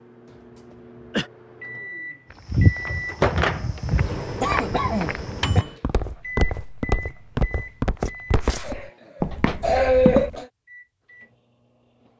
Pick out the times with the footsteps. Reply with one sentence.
The footsteps can be heard from 2.3 to 10.3 s.